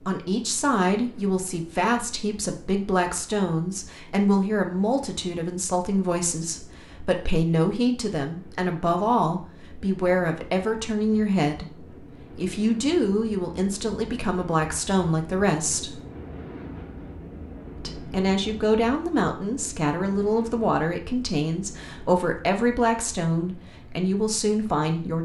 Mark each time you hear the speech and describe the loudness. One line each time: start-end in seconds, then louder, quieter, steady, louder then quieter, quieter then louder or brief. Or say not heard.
0.0-16.0 steady
17.8-25.2 steady.